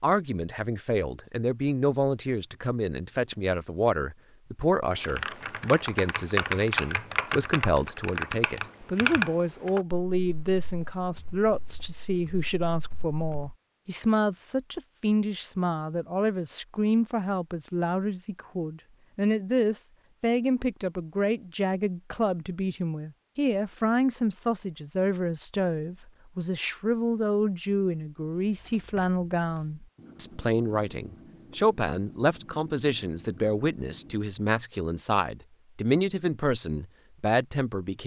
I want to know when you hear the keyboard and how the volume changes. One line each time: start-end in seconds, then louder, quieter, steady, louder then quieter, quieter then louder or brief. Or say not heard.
5.0-13.6 quieter.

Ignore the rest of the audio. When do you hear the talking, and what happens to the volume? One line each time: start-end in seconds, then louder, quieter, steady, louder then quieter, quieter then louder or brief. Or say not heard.
0.0-38.0 steady.